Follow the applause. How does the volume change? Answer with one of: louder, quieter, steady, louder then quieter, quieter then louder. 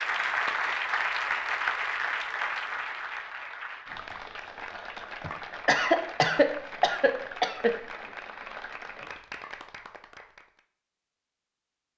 quieter.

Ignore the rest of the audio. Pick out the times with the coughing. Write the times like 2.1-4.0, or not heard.
5.2-7.9.